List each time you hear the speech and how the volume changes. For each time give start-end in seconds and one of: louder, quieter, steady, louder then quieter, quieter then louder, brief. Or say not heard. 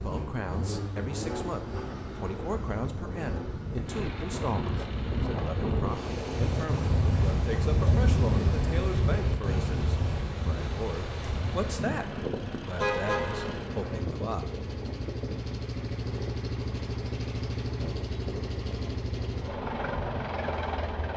0.0-14.4 steady.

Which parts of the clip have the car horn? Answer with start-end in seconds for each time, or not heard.
12.8-13.6.